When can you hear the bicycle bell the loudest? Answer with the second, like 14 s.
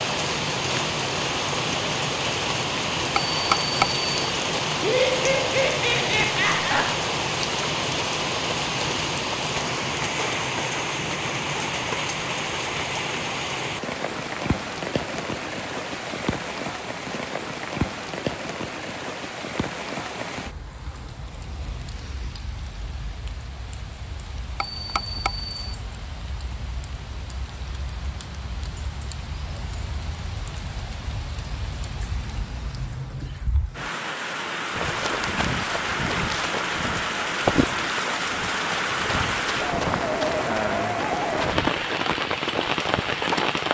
4 s.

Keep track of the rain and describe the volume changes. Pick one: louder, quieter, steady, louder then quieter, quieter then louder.
quieter then louder.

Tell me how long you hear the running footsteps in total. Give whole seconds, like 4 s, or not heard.
9 s.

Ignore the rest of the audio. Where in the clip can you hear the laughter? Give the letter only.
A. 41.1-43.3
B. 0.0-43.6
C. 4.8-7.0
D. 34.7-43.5
C.